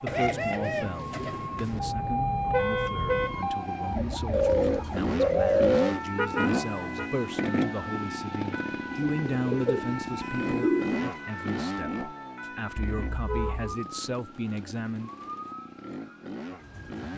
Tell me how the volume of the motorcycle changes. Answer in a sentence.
The volume of the motorcycle goes down.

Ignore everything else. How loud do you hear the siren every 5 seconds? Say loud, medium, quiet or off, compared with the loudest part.
loud, medium, medium, medium.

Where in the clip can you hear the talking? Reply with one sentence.
The talking can be heard from 0.0 to 15.1 s.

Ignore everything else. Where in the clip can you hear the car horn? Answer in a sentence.
You can hear the car horn from 1.7 to 3.5 s, from 6.2 to 7.1 s and from 12.8 to 13.8 s.